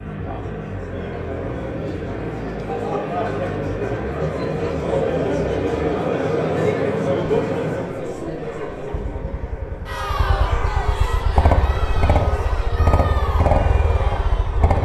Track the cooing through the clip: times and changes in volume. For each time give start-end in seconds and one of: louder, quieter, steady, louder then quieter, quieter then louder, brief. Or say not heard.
not heard.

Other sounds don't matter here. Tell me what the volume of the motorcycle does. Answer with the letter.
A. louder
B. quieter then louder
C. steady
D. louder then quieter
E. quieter
A.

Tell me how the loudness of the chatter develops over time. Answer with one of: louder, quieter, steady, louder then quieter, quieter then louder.
louder then quieter.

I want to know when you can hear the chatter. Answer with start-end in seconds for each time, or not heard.
0.0-14.8.